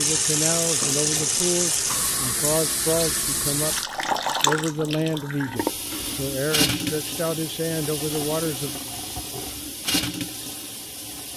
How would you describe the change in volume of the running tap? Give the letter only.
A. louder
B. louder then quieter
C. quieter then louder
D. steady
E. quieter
E.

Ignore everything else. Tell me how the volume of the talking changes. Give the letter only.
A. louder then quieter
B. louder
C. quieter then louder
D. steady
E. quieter
D.